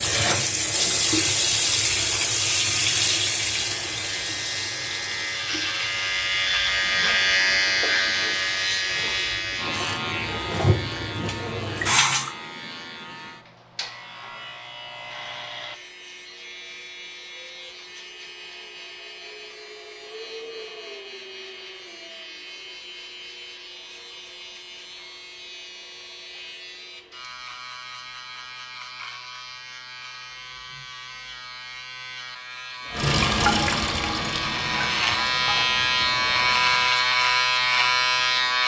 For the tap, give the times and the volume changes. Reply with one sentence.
You can hear the tap from 0.0 to 12.3 s, getting quieter then louder; and from 32.9 to 36.9 s, getting quieter.